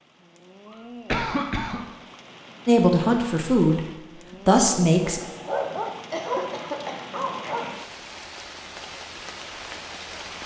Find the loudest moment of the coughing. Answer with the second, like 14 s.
1 s.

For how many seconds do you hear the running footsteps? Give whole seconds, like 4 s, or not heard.
not heard.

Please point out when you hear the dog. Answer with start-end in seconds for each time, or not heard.
5.0-7.7.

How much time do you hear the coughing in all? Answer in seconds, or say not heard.
2 s.